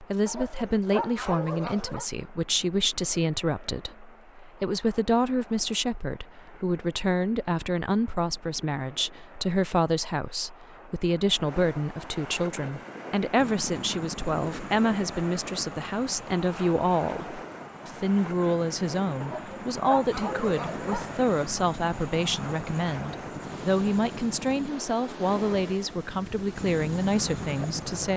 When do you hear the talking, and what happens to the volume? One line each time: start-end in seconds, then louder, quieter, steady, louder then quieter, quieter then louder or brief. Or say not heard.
0.0-28.1 steady.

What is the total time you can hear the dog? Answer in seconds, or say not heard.
4 s.